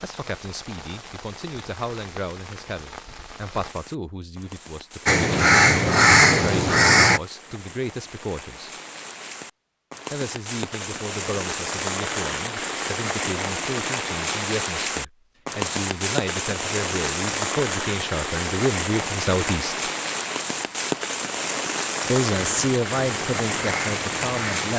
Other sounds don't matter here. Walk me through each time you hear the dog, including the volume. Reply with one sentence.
The dog can't be heard in this clip.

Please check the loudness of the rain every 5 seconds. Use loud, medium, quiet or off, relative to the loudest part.
quiet, quiet, loud, loud, loud.